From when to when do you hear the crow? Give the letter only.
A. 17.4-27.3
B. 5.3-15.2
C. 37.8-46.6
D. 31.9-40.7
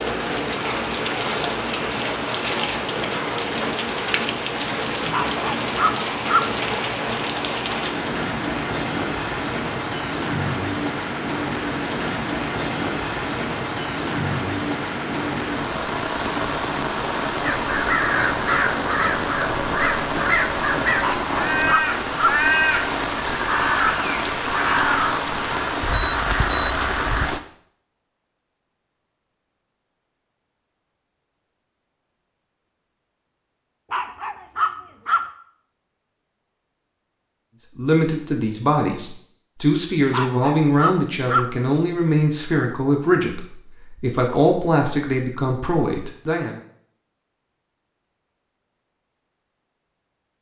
A.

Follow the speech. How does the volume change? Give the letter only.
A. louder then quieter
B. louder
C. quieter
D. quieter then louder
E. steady
E.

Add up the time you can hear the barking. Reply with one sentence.
You can hear the barking for 5 seconds altogether.